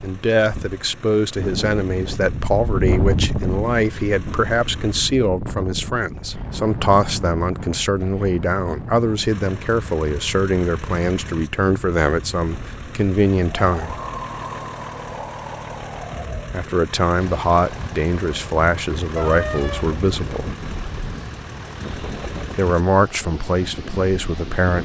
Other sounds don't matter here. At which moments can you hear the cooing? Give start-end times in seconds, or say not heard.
not heard.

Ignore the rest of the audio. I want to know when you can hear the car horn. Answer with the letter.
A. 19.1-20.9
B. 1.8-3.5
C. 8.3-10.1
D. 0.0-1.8
A.